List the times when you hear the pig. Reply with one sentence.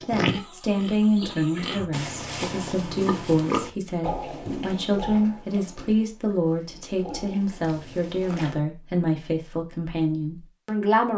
The pig can be heard from 0.0 to 8.6 s.